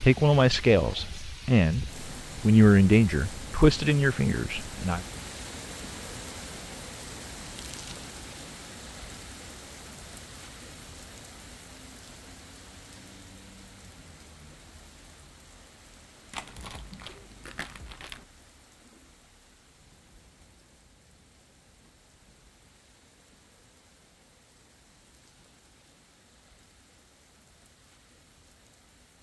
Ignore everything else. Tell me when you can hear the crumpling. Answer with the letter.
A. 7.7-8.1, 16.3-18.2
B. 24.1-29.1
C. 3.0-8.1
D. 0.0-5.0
A.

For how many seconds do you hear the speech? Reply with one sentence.
The speech can be heard for 5 seconds in total.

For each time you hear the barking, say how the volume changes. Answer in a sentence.
You can't hear the barking here.